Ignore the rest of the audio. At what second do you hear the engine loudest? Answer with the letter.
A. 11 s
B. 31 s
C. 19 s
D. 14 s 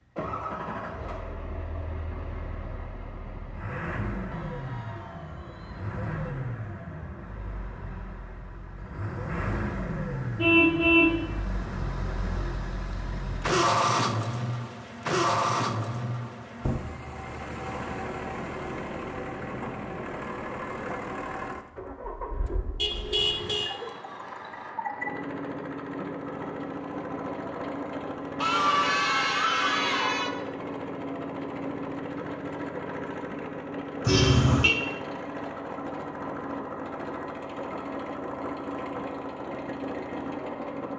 D.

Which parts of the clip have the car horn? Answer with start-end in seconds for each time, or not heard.
10.3-11.2, 22.8-23.7, 34.0-34.8.